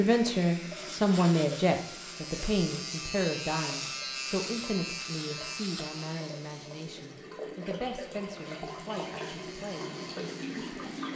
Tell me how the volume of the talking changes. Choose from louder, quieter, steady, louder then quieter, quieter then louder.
quieter.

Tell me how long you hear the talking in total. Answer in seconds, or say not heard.
11 s.